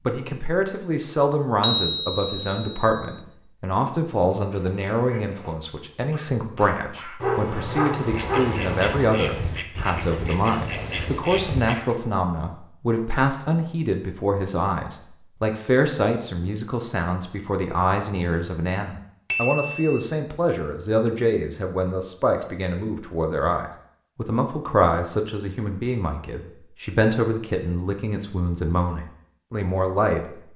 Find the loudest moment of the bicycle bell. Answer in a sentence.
The volume of the bicycle bell peaks at 2 seconds.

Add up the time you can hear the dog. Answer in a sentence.
The dog can be heard for 2 seconds in total.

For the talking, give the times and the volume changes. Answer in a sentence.
The talking can be heard from 0.1 to 30.4 s, at a steady volume.